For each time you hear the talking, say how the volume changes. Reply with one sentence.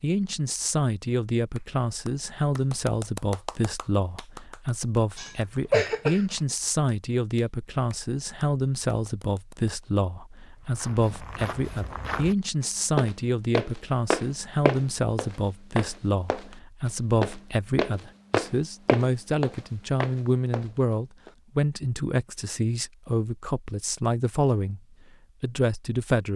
The talking can be heard from 0.0 to 24.8 s, at a steady volume; and briefly from 25.4 to 26.3 s.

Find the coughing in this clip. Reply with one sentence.
You can hear the coughing from 5.2 to 6.3 s.